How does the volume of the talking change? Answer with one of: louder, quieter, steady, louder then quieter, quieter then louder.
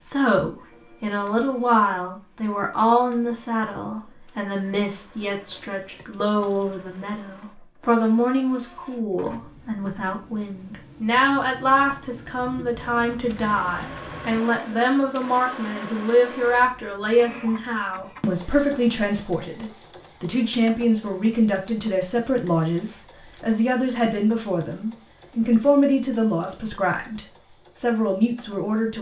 steady.